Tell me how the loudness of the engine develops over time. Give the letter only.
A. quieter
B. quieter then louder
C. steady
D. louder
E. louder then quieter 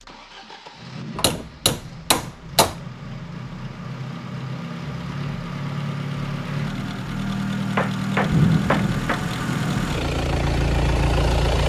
D.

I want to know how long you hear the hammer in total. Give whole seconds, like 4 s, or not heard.
3 s.